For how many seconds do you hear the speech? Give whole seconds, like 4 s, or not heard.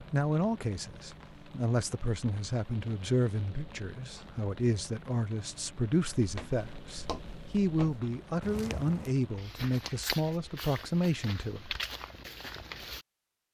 12 s.